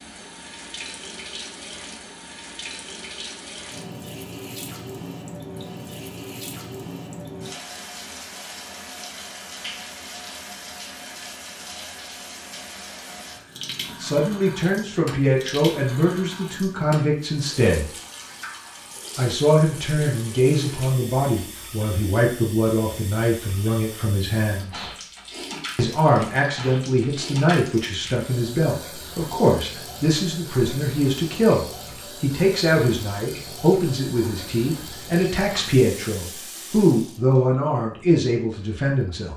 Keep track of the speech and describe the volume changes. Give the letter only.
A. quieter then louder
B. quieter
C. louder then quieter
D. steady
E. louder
D.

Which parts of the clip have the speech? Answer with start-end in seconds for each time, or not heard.
14.0-17.9, 19.1-24.9, 25.8-39.3.